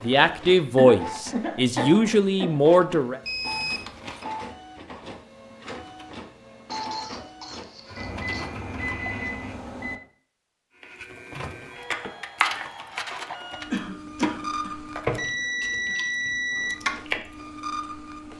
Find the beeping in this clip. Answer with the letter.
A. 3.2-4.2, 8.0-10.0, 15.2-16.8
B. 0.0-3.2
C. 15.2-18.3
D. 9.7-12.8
A.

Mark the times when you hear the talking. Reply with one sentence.
You can hear the talking from 0.0 to 3.2 s.